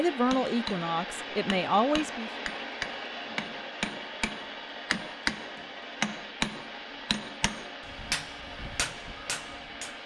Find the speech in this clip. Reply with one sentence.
The speech can be heard from 0.0 to 2.5 s.